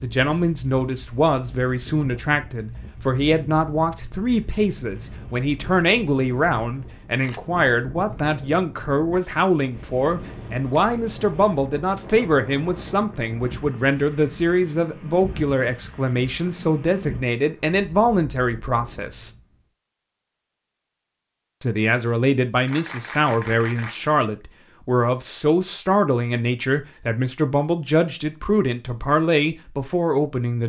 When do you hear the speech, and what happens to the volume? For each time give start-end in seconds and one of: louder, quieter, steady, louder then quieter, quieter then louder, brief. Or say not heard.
0.0-19.3 steady
21.6-30.6 steady.